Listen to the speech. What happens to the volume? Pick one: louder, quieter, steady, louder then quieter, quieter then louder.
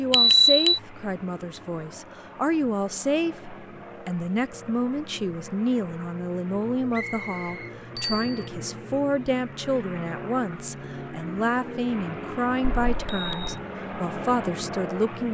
steady.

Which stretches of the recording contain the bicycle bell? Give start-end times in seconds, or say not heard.
0.1-0.8, 8.0-8.4, 12.8-13.6.